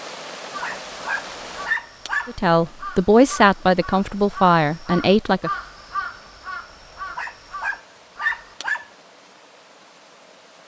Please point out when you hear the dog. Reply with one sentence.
You can hear the dog from 0.6 to 2.3 s and from 7.2 to 8.8 s.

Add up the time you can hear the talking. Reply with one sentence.
The talking can be heard for 3 seconds in total.